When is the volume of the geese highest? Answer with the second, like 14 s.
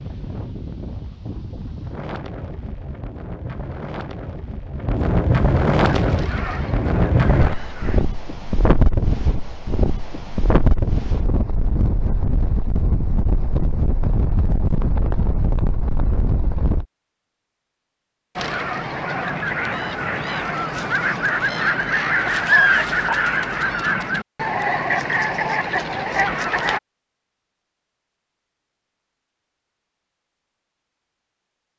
23 s.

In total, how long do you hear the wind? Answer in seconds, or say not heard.
17 s.